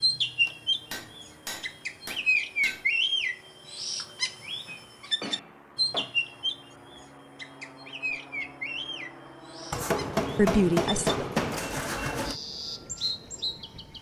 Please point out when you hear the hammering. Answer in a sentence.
The hammering can be heard from 0.5 to 2.9 s, from 4.7 to 6.2 s and from 9.7 to 12.4 s.